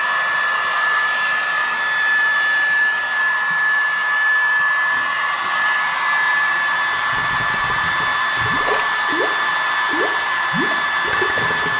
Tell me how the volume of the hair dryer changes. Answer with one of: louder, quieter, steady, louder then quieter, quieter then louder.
steady.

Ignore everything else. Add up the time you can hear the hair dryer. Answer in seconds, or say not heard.
12 s.